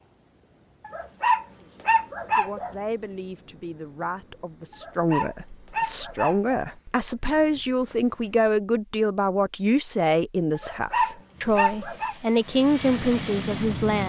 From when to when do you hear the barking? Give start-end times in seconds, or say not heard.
0.8-2.8, 4.7-6.5, 10.6-12.2.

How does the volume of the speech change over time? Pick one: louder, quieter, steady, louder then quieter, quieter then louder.
louder.